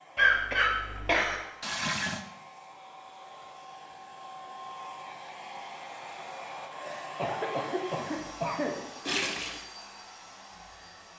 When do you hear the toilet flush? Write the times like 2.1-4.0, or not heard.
1.6-2.2, 9.1-9.7.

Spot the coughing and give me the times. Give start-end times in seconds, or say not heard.
0.1-1.4, 6.8-8.8.